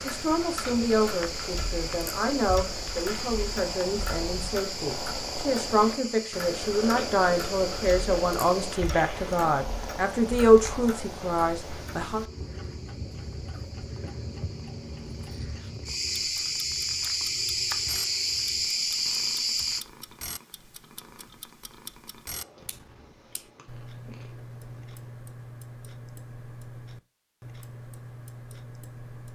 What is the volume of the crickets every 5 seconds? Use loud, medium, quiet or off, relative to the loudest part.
medium, medium, quiet, loud, off, off.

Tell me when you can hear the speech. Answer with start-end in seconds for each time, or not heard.
0.0-12.2.